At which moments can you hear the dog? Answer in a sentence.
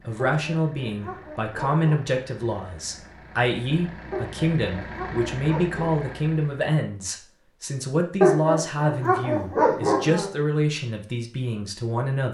You can hear the dog from 0.1 to 2.2 s, from 4.1 to 6.0 s and from 8.2 to 10.3 s.